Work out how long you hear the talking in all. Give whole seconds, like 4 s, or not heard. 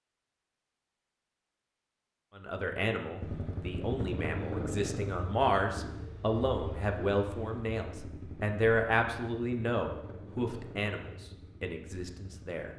10 s.